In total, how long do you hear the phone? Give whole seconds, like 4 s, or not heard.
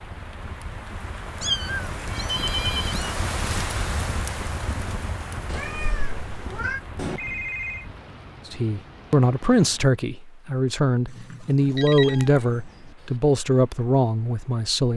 3 s.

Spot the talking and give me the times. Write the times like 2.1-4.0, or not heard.
8.4-14.9.